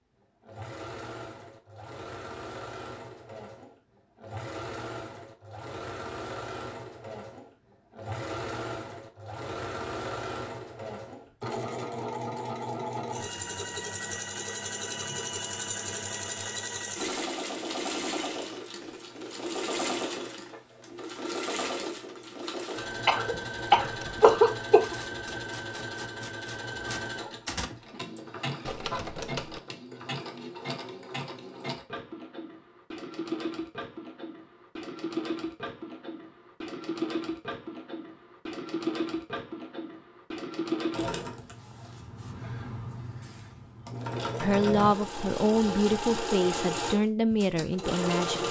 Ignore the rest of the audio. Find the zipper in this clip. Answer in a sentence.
The zipper can't be heard in this clip.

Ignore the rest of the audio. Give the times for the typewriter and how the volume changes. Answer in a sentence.
The typewriter can be heard from 23.8 to 29.6 s, getting louder.